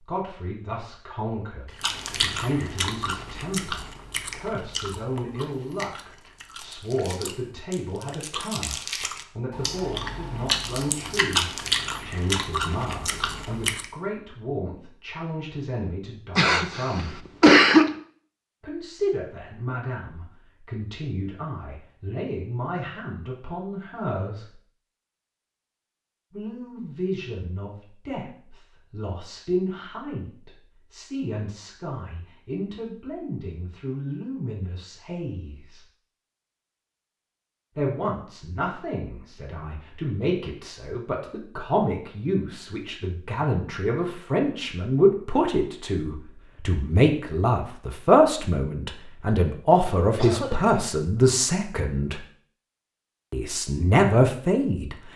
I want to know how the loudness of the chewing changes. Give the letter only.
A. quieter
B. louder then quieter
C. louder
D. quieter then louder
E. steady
D.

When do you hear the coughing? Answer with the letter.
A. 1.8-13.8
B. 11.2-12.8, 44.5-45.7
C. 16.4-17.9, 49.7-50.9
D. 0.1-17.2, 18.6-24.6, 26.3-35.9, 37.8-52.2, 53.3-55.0
C.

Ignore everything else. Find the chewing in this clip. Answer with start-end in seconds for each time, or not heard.
1.8-13.8.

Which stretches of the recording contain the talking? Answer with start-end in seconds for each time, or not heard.
0.1-17.2, 18.6-24.6, 26.3-35.9, 37.8-52.2, 53.3-55.0.